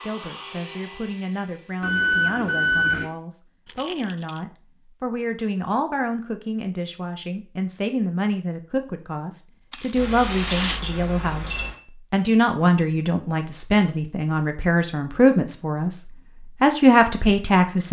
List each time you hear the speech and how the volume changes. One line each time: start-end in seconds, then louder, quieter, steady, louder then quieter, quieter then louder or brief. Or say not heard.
0.0-17.8 louder.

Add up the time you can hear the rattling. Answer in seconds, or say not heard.
2 s.